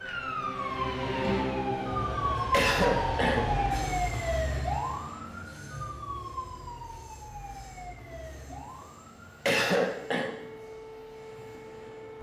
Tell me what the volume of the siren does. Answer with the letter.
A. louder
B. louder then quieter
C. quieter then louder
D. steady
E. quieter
E.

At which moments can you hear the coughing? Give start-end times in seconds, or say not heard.
2.5-3.5, 9.4-10.3.